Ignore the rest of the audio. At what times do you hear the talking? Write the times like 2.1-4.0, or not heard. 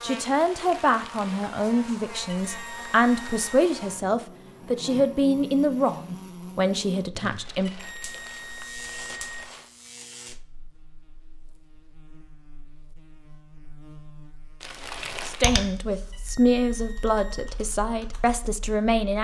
0.0-7.7, 15.2-19.1.